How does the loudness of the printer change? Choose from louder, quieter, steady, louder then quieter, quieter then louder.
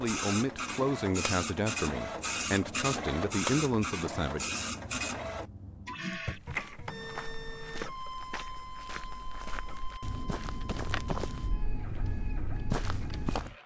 quieter.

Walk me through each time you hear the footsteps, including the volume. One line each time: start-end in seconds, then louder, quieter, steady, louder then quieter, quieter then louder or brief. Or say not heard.
6.2-13.6 louder.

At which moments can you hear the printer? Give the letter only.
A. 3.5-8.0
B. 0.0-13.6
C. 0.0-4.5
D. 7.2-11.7
B.